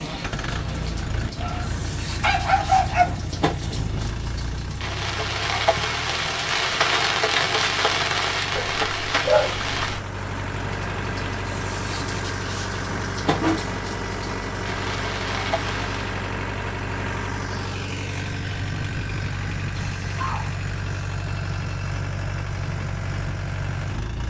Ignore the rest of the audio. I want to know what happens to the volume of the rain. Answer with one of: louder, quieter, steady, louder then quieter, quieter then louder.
louder then quieter.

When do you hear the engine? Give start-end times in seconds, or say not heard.
0.0-24.2.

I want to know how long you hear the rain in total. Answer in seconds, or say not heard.
16 s.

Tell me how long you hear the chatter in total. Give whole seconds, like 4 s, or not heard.
not heard.